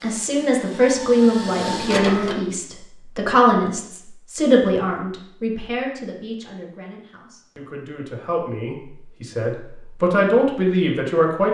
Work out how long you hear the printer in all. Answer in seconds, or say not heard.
2 s.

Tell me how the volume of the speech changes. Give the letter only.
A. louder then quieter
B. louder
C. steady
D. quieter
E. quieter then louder
E.